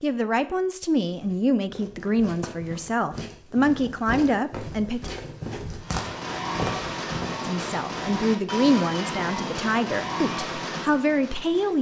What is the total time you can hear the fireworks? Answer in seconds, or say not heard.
6 s.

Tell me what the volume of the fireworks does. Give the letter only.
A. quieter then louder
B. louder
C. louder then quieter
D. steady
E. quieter
D.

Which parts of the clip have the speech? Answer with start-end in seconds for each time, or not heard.
0.0-5.1, 7.4-11.7.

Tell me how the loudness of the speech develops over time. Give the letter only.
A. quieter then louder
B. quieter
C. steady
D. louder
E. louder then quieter
C.